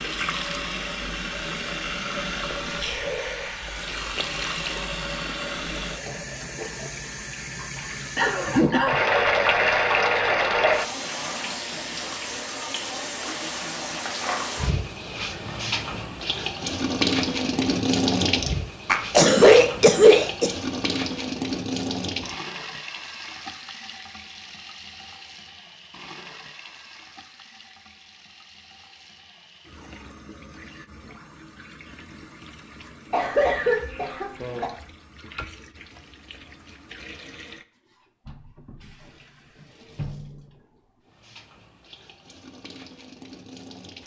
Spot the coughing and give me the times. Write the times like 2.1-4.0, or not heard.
8.2-8.9, 18.9-20.5, 33.1-34.7.